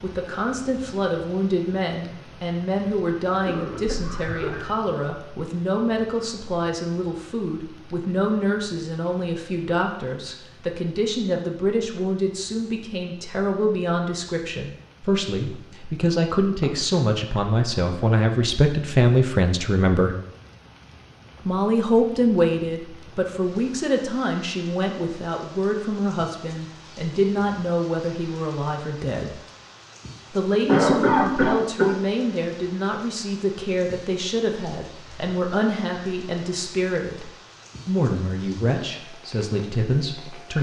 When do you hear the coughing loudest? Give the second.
31 s.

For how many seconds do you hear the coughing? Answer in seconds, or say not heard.
4 s.